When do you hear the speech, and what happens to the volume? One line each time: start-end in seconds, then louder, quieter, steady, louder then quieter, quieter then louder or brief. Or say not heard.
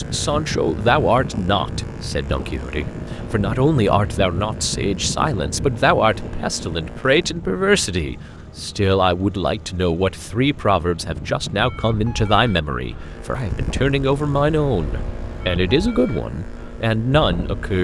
0.0-17.8 steady.